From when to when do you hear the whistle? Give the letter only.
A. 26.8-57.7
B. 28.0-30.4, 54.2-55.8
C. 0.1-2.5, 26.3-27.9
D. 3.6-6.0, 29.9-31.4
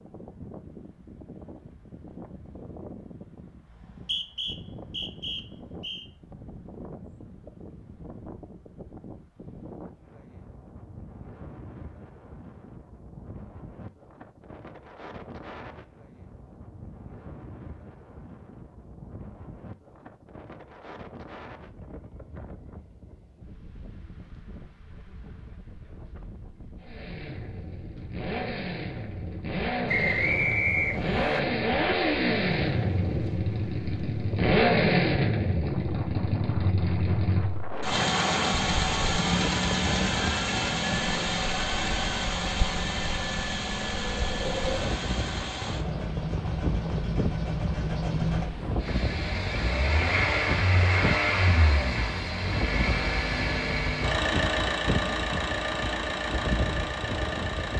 D.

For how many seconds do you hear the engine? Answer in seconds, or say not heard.
31 s.